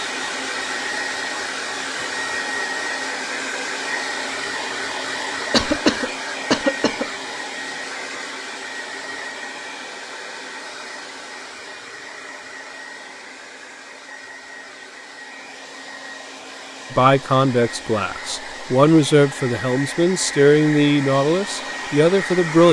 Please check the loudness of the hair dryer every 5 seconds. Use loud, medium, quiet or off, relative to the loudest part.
loud, loud, medium, medium, loud.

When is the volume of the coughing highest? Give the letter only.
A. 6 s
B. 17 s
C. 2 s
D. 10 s
A.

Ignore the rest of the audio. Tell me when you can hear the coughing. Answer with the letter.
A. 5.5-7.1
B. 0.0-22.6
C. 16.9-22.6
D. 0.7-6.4
A.